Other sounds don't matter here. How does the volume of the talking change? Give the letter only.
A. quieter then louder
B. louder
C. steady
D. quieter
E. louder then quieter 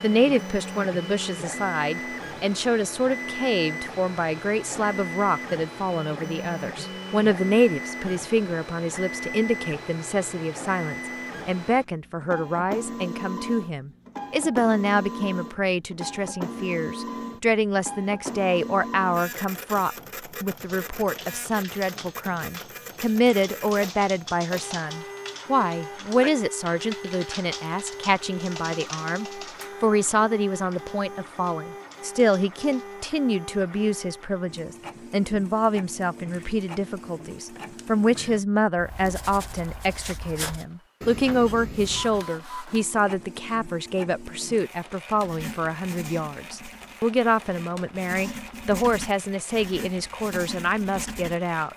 C.